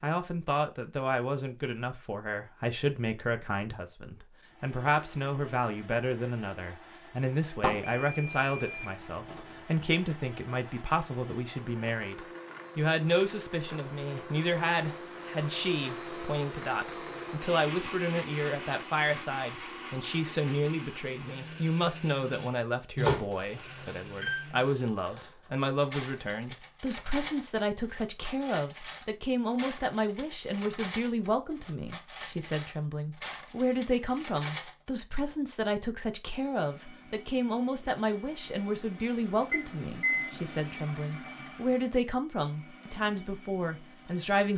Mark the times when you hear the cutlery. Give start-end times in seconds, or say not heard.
23.3-34.8.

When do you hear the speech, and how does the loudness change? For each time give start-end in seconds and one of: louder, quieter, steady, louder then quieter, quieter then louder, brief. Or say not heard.
0.0-44.5 steady.